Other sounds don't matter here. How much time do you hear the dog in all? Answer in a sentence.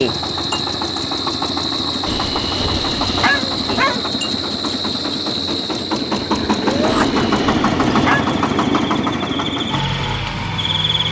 The dog can be heard for 3 seconds in total.